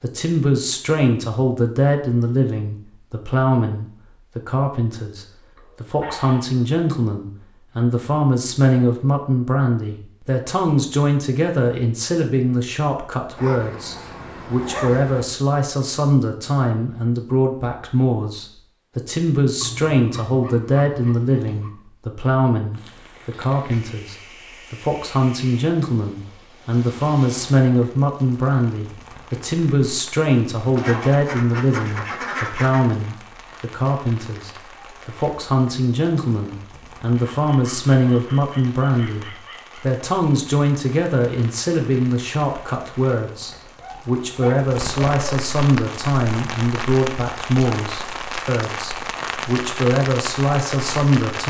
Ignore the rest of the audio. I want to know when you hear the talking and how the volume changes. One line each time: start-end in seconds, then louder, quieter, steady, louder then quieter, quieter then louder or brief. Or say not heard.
0.0-51.4 steady.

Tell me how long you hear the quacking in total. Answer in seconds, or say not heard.
2 s.